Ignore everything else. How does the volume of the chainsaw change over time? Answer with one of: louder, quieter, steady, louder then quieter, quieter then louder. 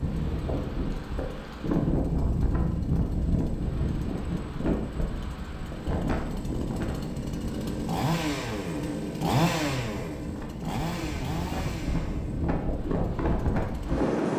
louder then quieter.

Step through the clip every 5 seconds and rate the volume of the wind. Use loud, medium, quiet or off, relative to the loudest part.
loud, medium, loud.